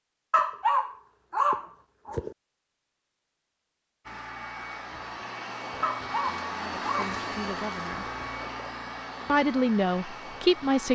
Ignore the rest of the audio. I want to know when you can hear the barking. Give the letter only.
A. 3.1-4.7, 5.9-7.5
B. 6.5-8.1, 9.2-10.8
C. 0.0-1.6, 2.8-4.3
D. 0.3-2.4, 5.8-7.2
D.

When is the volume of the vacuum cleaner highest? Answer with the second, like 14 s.
7 s.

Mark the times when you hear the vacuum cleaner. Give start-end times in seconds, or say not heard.
4.0-10.8.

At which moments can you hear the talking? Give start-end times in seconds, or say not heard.
6.5-8.1, 9.2-10.8.